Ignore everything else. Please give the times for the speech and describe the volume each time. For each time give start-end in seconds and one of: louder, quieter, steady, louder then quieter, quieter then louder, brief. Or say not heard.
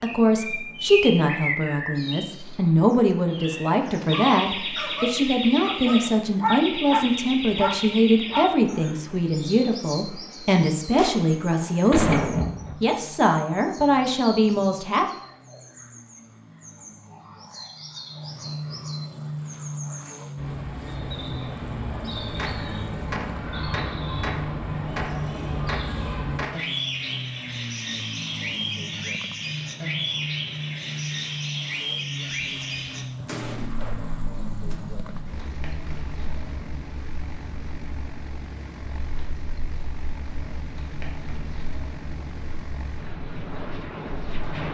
0.0-15.1 steady.